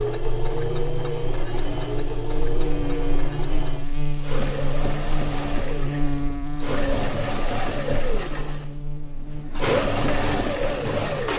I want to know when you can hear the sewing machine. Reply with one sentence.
The sewing machine can be heard from 0.0 to 11.3 s.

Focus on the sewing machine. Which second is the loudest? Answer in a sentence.
The loudest moment of the sewing machine is at 10 seconds.